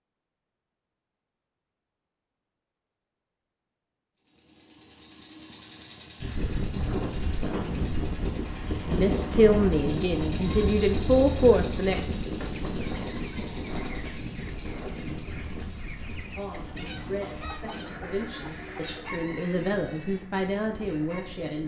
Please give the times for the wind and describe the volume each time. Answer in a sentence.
You can hear the wind from 6.2 to 21.6 s, getting quieter.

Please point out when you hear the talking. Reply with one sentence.
The talking can be heard from 8.8 to 12.0 s and from 16.4 to 21.6 s.